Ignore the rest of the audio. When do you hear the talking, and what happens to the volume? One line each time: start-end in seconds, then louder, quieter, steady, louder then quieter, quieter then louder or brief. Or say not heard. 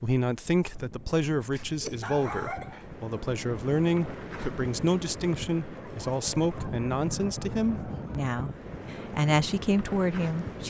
0.0-10.6 steady.